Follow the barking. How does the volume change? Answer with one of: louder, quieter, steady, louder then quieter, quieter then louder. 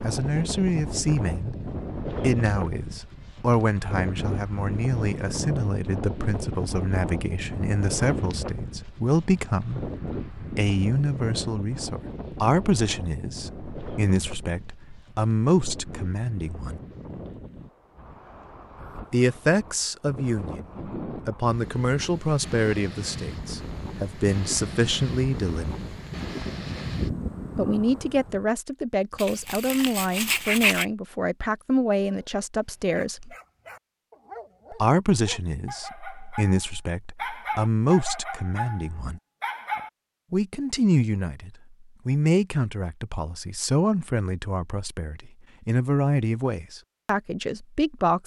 louder.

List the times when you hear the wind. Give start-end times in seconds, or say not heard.
0.0-28.4.